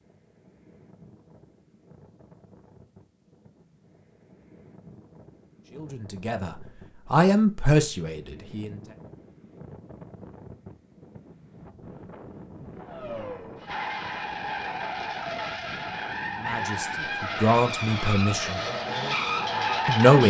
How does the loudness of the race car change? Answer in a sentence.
The loudness of the race car goes up.